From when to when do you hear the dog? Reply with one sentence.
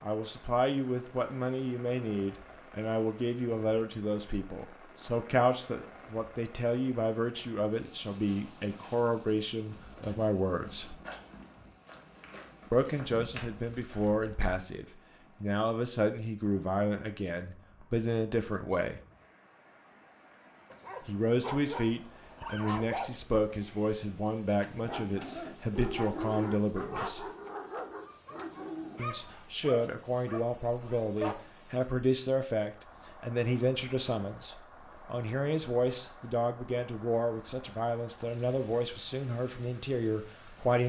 The dog can be heard from 20.7 to 31.4 s.